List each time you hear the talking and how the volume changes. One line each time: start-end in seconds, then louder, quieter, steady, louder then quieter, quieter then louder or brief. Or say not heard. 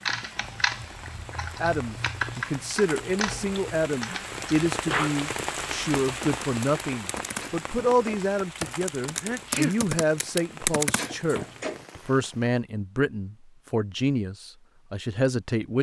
1.6-15.7 steady.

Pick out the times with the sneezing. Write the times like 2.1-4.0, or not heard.
4.0-5.2, 9.2-9.8.